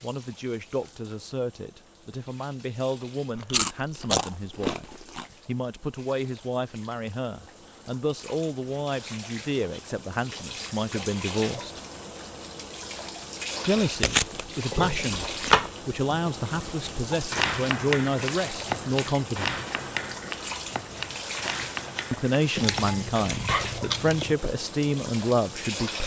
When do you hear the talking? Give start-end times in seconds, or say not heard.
0.0-11.8, 13.7-19.6, 22.1-26.0.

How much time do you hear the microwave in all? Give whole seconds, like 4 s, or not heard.
not heard.